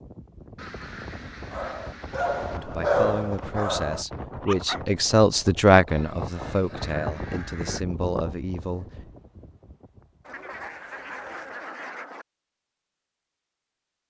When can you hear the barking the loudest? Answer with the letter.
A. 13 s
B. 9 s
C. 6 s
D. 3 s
D.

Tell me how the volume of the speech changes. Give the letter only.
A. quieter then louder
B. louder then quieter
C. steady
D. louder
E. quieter
B.